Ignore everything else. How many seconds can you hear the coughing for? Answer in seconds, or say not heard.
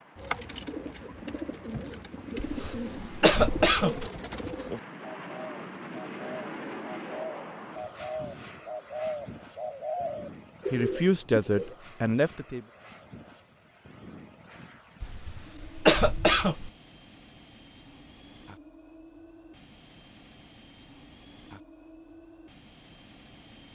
3 s.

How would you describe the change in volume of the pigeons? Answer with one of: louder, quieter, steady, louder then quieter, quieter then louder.
steady.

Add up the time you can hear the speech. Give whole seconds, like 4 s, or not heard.
2 s.